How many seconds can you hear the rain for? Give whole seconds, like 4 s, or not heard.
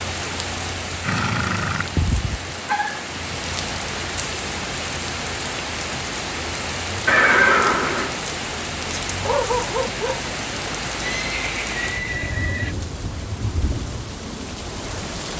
15 s.